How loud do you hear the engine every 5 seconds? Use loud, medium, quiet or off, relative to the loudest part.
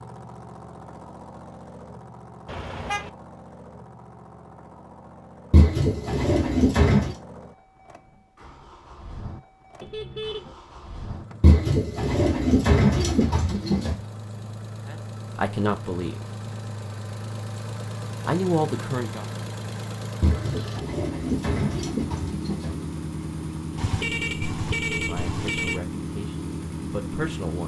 medium, quiet, medium, loud, loud, loud.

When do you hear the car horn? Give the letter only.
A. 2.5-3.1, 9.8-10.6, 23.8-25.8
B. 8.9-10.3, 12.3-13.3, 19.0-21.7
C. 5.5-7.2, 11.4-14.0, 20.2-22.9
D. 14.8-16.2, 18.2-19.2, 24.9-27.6
A.